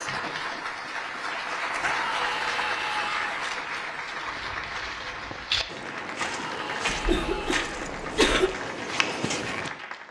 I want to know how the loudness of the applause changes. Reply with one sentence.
The volume of the applause goes down.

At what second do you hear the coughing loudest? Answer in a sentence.
The loudest moment of the coughing is at 8 seconds.